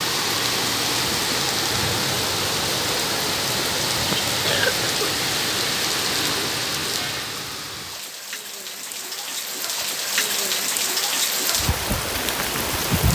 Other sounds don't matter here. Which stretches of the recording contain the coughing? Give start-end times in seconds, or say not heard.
3.9-5.1.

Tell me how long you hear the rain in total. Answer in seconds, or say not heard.
13 s.